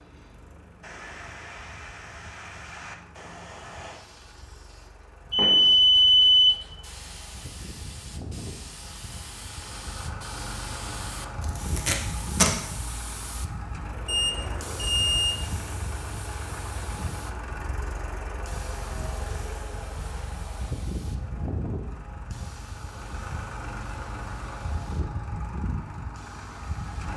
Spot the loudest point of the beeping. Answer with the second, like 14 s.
6 s.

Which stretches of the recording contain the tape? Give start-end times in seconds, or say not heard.
11.4-12.6.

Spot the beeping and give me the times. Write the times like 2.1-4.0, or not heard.
5.3-6.6, 14.1-15.4.